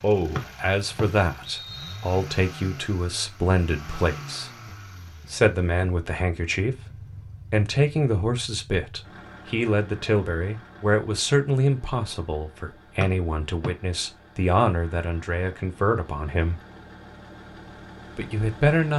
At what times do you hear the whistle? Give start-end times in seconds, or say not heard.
0.3-2.1, 13.0-13.7.